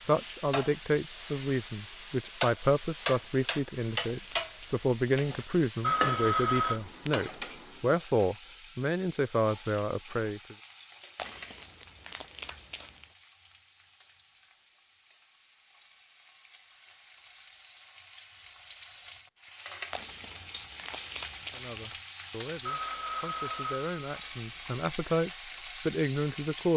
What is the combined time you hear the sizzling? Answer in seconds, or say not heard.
27 s.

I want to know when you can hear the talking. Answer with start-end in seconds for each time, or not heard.
0.0-10.6, 21.6-26.7.